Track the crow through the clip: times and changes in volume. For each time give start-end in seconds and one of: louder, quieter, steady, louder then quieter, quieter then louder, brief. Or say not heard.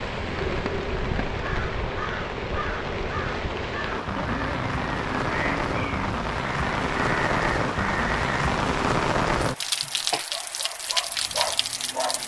0.0-8.3 steady.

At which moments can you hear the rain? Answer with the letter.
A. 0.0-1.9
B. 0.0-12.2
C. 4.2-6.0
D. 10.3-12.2
B.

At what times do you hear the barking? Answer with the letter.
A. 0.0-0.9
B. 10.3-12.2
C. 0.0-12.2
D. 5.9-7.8
B.